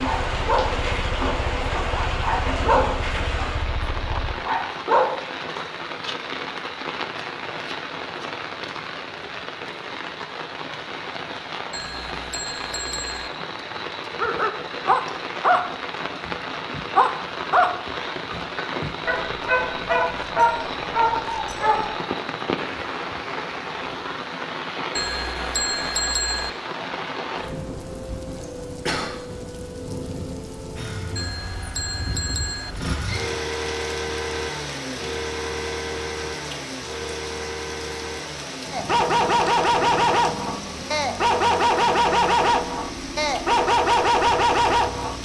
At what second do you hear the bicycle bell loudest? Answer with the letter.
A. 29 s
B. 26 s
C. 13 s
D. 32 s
B.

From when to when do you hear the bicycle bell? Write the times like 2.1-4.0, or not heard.
11.7-13.3, 24.9-26.5, 31.1-32.8.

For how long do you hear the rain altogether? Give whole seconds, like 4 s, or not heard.
45 s.